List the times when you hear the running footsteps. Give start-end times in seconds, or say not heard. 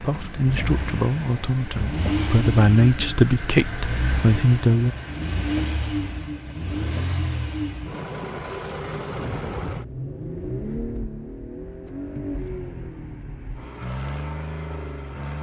not heard.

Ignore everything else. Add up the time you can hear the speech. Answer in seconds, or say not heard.
5 s.